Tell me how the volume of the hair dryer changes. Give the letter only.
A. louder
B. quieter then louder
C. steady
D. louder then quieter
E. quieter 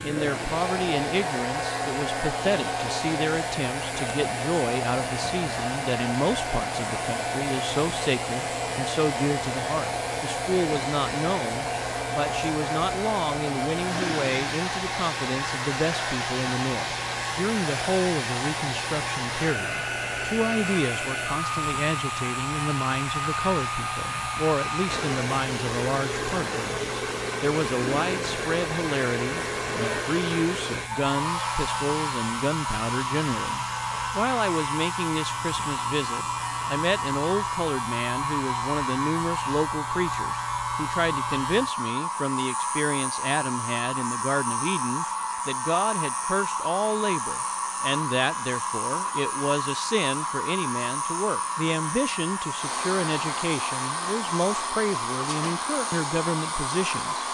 C.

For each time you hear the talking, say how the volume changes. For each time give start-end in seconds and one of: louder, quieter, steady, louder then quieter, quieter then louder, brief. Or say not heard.
0.0-57.2 steady.